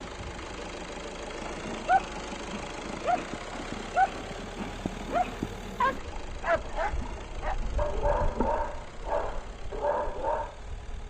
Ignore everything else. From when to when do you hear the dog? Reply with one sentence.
The dog can be heard from 1.6 to 10.6 s.